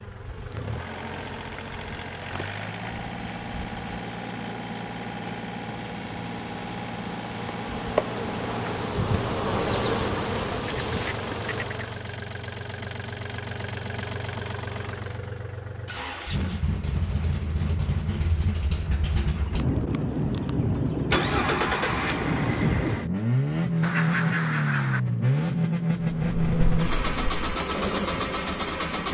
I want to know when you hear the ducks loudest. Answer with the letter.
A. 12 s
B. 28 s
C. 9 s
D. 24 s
D.